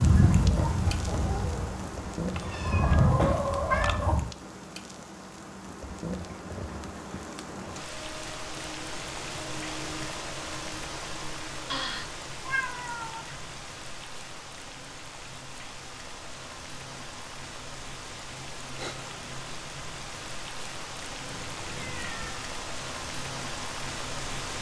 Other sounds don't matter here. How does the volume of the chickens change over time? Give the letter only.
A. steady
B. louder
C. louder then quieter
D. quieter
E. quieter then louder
E.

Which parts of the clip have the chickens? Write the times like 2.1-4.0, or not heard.
0.0-4.2.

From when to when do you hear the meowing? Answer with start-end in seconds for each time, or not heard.
2.4-4.0, 11.7-13.3, 21.2-22.4.